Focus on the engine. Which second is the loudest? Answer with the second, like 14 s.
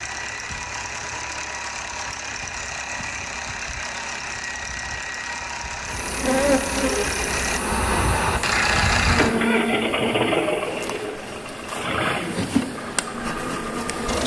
9 s.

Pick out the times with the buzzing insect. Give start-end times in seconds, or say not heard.
5.8-14.2.